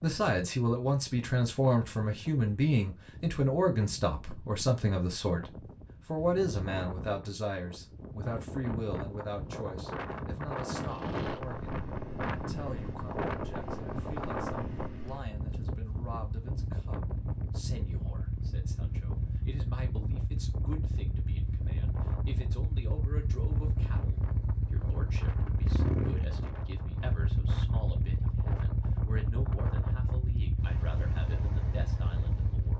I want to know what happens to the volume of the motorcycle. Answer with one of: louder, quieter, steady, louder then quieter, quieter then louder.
louder.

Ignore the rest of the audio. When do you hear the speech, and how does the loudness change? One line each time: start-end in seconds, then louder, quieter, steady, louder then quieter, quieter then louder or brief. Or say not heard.
0.0-32.7 quieter.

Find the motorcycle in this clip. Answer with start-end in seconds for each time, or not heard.
10.7-32.7.